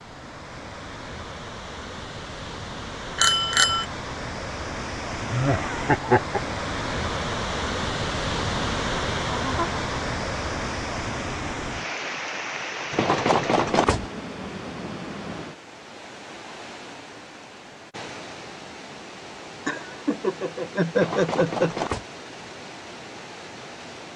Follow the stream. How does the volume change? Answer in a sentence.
The loudness of the stream goes up, then down.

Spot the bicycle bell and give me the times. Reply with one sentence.
The bicycle bell can be heard from 3.1 to 3.9 s, from 12.9 to 14.1 s and from 20.9 to 22.1 s.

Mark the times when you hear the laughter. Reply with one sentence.
The laughter can be heard from 5.3 to 6.4 s, from 8.8 to 9.6 s and from 19.6 to 21.8 s.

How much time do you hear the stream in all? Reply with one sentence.
The stream can be heard for 24 seconds in total.